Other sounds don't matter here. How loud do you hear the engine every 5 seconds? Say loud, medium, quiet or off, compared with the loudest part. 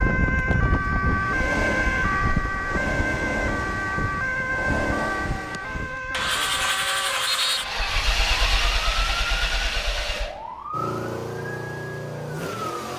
medium, loud, medium.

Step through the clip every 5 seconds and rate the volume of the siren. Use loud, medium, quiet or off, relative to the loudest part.
loud, medium, medium.